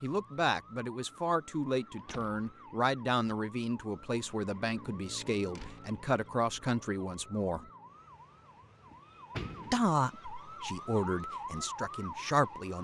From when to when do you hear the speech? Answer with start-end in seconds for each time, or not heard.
0.0-7.7, 9.7-12.7.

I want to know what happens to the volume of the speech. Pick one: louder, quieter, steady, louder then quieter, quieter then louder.
steady.